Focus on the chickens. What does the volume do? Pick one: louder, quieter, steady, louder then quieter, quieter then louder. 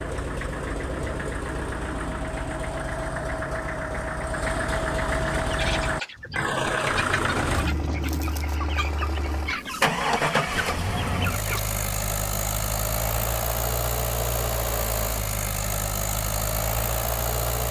steady.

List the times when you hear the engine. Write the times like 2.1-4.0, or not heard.
0.0-17.6.